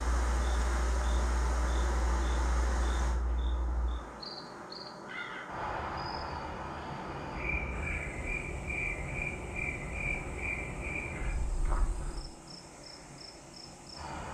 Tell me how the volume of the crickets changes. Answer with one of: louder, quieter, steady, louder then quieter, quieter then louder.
louder then quieter.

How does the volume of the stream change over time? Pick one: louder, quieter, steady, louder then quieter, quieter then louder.
quieter.